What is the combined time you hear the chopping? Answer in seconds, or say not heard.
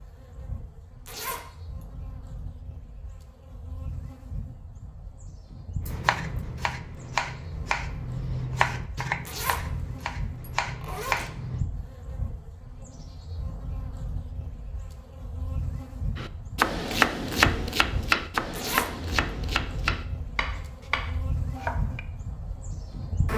12 s.